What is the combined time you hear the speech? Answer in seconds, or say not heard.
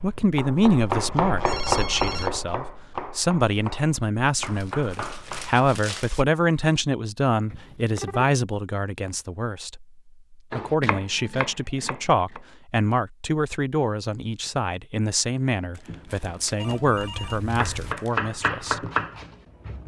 19 s.